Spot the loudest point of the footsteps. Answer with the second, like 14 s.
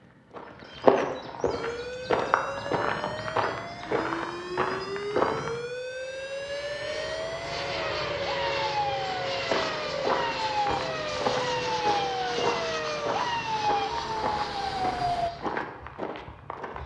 1 s.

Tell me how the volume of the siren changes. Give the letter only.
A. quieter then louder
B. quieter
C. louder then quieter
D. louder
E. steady
D.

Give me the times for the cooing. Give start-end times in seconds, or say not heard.
not heard.